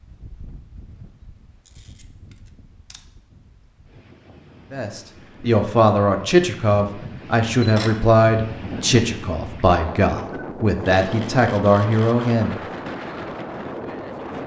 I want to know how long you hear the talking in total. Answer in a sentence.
You can hear the talking for 8 seconds altogether.